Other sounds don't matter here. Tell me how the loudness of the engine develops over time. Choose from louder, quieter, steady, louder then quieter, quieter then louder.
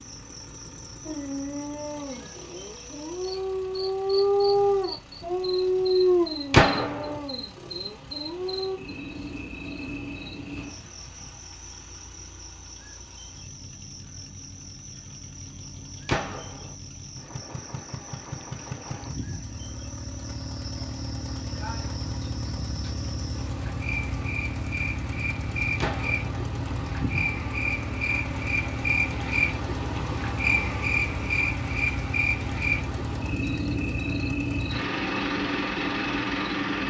louder.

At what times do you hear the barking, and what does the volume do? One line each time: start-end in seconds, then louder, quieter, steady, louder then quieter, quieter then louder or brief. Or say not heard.
1.1-8.8 louder then quieter.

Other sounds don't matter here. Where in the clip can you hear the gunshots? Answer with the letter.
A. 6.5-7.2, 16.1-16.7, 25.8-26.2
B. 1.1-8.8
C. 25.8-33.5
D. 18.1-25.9
A.